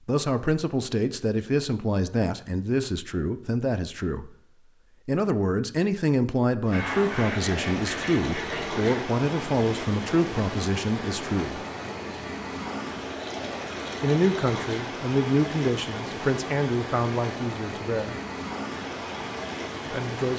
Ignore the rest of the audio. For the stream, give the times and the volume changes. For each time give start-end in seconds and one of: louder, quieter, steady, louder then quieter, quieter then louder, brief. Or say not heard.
6.6-20.3 steady.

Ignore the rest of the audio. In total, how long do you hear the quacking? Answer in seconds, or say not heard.
2 s.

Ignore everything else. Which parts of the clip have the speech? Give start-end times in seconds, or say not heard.
0.1-4.3, 5.0-11.7, 14.0-18.2, 19.9-20.3.